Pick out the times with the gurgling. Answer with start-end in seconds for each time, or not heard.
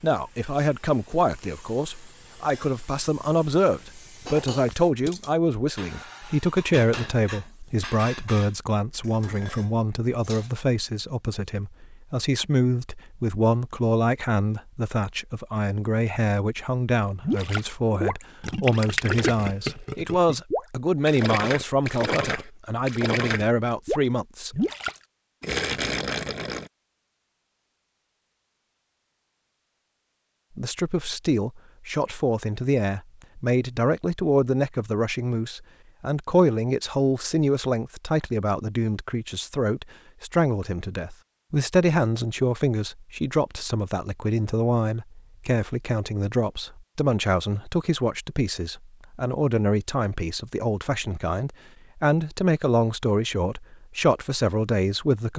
17.2-26.7.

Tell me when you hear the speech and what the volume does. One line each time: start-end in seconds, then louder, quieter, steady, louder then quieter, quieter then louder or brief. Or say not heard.
0.0-24.6 steady
30.6-55.3 steady.